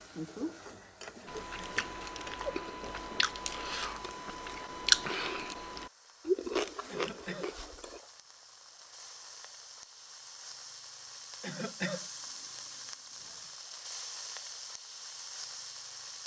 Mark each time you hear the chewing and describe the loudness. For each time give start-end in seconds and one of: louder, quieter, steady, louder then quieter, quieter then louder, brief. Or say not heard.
1.2-8.0 louder then quieter.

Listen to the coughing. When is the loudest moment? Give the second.
12 s.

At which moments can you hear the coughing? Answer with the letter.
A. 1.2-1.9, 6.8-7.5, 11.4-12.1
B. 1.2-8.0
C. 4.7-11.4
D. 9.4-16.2
A.